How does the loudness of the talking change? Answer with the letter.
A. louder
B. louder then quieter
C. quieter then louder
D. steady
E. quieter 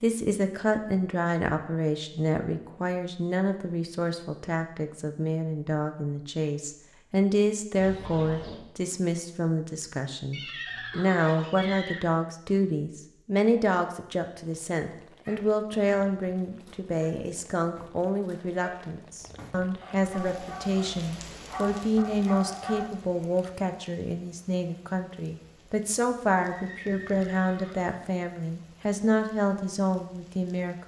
D.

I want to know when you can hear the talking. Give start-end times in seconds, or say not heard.
0.0-30.8.